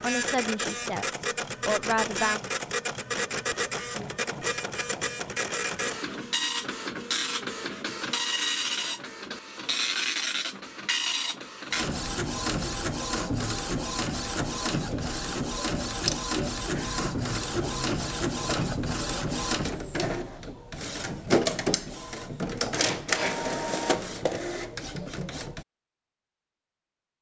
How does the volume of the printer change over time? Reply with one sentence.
The loudness of the printer stays about the same.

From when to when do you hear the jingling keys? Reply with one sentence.
The jingling keys can be heard from 16.8 to 18.9 s.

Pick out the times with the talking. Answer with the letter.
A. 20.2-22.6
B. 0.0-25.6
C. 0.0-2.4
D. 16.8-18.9
C.